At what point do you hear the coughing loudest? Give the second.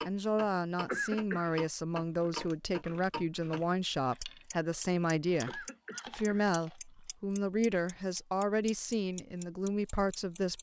1 s.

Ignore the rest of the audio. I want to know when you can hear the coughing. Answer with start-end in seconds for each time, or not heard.
0.8-1.4, 5.5-6.5.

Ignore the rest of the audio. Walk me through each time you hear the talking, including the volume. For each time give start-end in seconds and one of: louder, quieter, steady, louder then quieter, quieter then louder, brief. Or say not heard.
0.1-10.5 steady.